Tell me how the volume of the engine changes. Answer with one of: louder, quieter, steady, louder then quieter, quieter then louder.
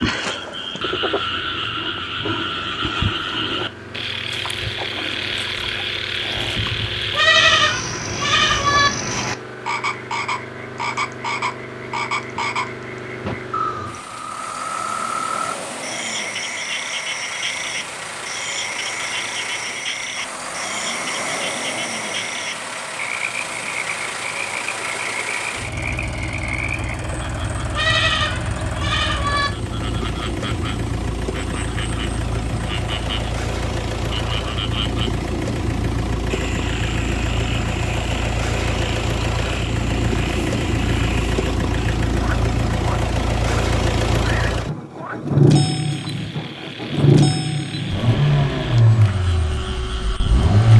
louder.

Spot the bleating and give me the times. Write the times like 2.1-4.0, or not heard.
7.1-8.9, 27.7-29.5.